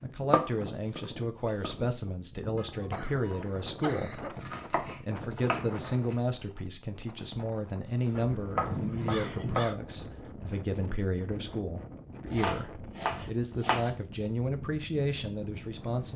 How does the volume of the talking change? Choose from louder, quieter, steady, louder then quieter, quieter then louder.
steady.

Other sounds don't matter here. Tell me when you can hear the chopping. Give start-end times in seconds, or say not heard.
0.3-1.8, 4.4-6.2, 8.2-9.8, 12.3-13.9.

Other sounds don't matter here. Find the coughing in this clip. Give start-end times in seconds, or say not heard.
2.5-4.4, 8.7-9.7.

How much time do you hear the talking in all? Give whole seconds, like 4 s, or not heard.
16 s.